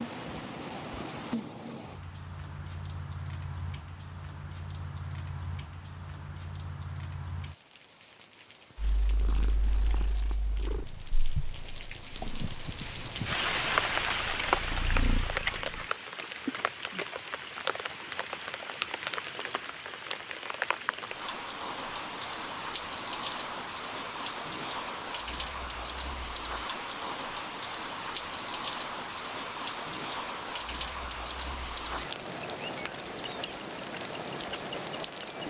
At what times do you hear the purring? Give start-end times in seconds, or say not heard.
8.8-15.8.